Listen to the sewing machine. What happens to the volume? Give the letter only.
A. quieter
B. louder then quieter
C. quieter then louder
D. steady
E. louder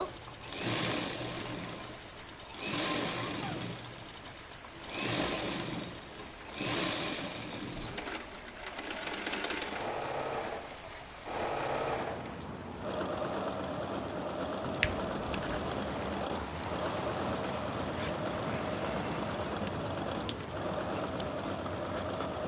D.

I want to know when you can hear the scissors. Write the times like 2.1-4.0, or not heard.
14.8-15.7.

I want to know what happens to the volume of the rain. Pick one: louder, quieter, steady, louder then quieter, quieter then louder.
louder.